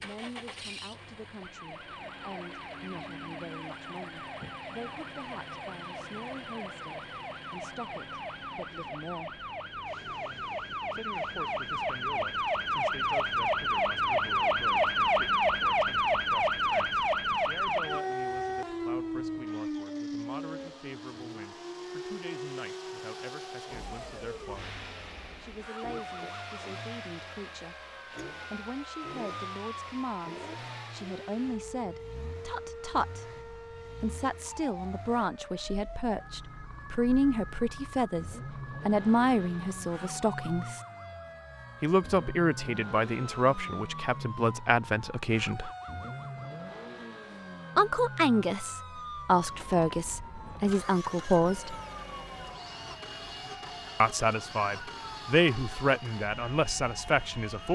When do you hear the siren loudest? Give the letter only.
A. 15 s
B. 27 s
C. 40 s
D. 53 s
A.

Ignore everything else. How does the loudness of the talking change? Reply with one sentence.
The volume of the talking goes up.